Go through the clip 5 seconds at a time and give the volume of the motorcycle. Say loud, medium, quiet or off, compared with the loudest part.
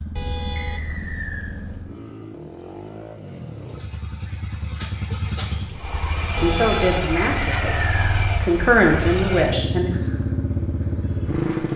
medium, loud, loud.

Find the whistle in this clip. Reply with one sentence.
You can hear the whistle from 0.6 to 1.6 s and from 7.3 to 8.2 s.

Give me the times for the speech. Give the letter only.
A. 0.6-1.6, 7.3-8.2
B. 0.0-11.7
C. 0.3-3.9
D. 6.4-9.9
D.